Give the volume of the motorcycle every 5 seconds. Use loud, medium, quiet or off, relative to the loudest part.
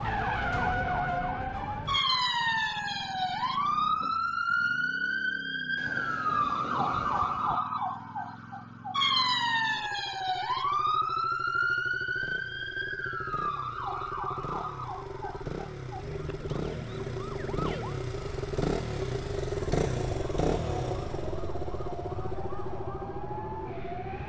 quiet, quiet, medium, loud, loud.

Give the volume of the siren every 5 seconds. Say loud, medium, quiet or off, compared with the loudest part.
loud, loud, loud, quiet, quiet.